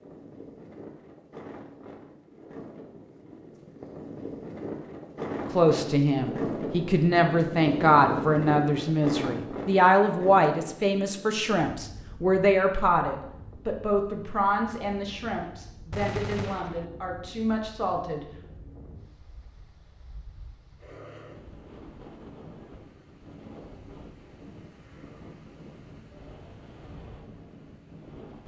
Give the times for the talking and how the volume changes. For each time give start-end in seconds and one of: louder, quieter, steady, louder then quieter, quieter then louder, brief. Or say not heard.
5.5-18.2 quieter.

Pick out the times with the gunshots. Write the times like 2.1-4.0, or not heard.
15.9-16.9.